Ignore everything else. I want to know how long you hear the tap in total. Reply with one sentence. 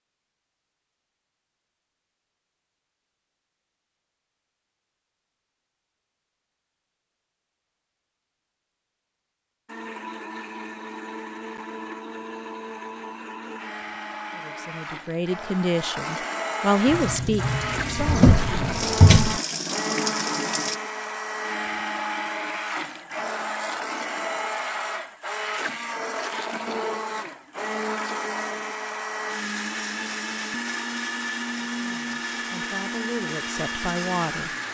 You can hear the tap for 4 seconds altogether.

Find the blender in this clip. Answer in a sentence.
You can hear the blender from 9.7 to 34.6 s.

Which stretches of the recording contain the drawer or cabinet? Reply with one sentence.
You can hear the drawer or cabinet from 17.9 to 19.4 s.